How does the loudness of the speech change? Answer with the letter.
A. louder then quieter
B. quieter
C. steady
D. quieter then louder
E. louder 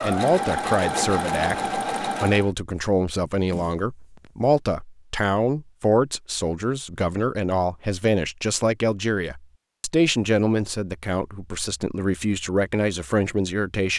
C.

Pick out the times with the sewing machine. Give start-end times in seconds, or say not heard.
0.0-2.5.